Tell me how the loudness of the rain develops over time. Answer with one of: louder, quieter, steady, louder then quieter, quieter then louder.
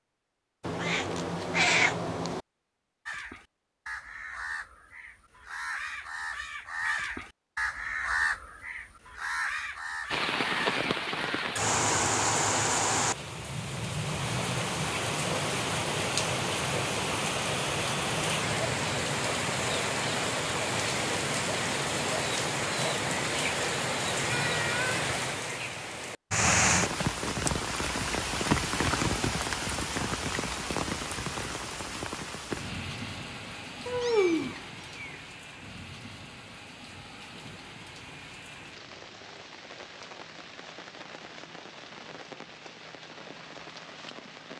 quieter.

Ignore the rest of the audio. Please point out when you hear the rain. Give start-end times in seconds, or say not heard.
10.1-44.5.